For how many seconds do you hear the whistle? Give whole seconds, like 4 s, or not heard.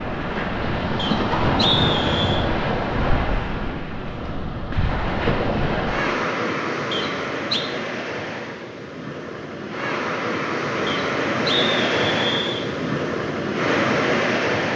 4 s.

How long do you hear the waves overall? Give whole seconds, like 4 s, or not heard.
15 s.